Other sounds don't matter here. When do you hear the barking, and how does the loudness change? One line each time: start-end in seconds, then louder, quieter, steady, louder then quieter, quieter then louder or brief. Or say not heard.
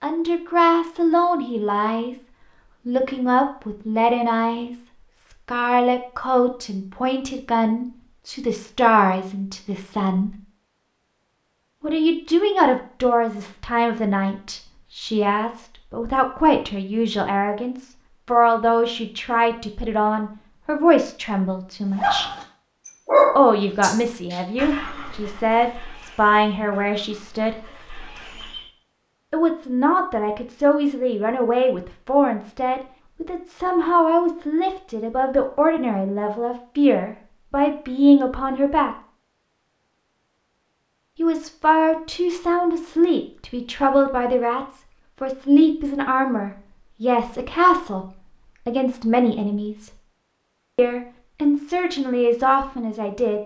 21.9-28.7 quieter.